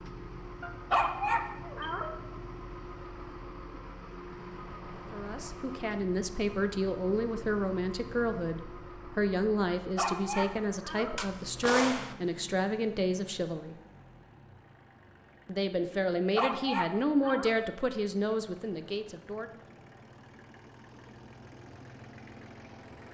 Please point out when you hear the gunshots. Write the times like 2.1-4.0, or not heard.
11.2-12.2.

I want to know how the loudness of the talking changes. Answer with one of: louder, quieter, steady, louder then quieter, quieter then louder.
steady.